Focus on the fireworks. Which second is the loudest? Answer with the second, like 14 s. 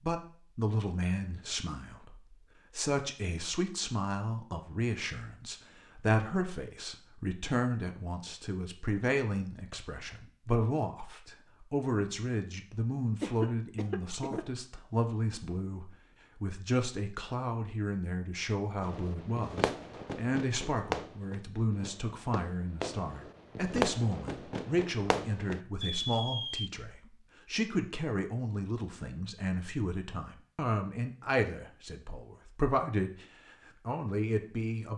24 s.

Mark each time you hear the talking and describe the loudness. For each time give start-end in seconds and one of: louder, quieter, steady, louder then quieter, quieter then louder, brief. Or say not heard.
0.0-34.9 steady.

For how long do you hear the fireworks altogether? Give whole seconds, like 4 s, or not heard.
8 s.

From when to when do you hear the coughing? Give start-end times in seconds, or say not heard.
13.2-14.4.